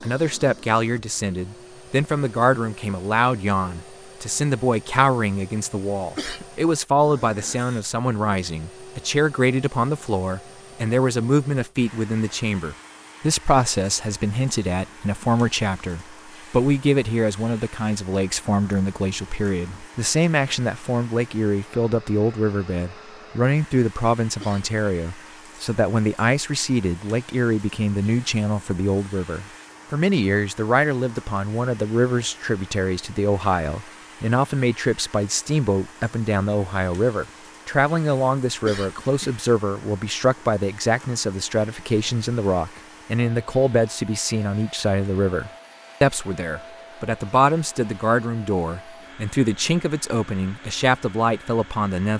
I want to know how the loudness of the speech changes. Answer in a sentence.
The volume of the speech stays about the same.